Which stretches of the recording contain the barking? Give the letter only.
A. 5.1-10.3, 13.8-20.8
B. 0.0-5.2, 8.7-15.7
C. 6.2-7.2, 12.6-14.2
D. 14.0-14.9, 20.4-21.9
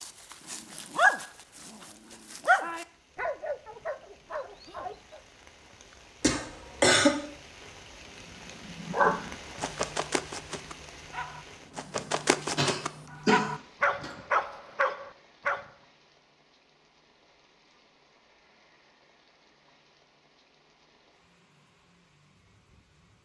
B.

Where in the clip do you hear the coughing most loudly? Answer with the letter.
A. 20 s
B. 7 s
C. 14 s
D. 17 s
B.